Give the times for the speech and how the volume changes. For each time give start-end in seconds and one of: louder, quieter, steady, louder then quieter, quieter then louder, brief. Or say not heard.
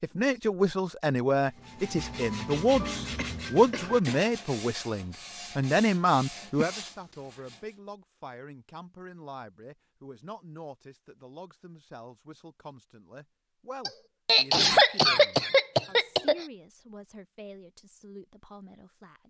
0.0-19.2 quieter.